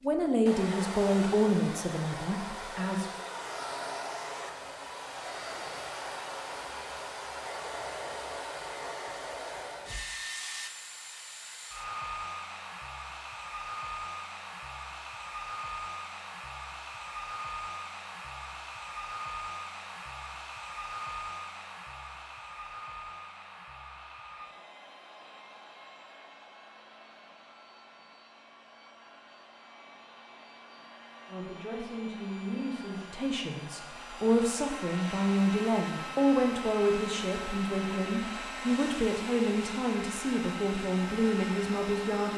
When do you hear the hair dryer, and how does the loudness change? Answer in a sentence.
You can hear the hair dryer from 0.0 to 42.3 s, getting quieter then louder.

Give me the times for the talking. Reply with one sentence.
The talking can be heard from 0.0 to 3.1 s and from 31.2 to 42.3 s.